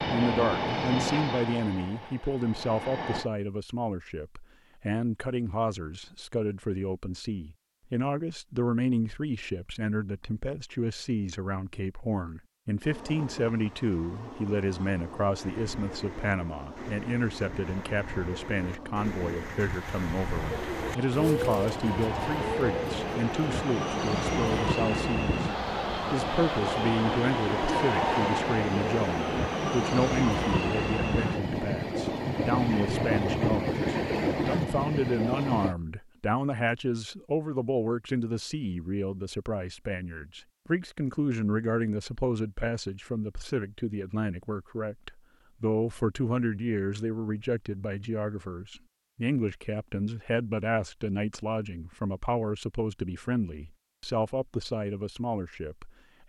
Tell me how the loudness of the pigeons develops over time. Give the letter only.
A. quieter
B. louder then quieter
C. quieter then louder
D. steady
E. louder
E.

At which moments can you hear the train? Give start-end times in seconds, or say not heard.
0.0-3.3, 12.8-35.8.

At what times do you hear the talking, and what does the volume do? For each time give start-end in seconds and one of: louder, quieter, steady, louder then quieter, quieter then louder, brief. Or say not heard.
0.1-56.2 steady.